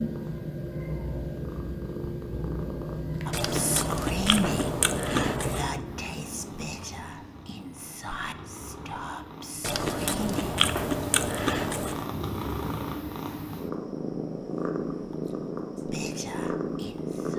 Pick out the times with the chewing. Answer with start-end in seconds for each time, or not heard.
3.3-5.7, 9.6-12.1.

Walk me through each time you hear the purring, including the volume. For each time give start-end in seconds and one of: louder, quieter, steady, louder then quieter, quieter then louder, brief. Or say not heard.
0.0-17.3 quieter then louder.